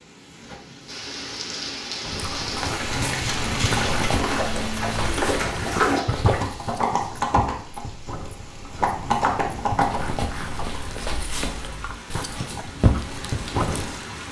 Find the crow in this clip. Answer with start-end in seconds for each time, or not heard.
not heard.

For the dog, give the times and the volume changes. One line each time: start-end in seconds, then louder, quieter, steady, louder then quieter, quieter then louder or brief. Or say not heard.
2.0-14.1 quieter then louder.